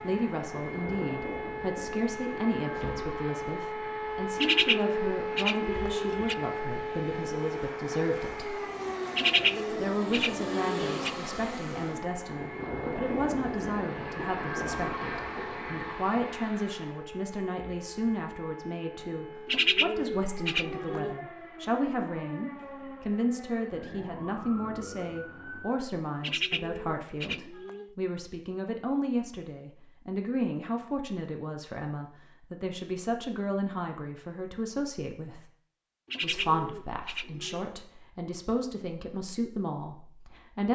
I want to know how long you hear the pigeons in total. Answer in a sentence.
The pigeons can be heard for 9 seconds in total.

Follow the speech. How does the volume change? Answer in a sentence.
The volume of the speech stays about the same.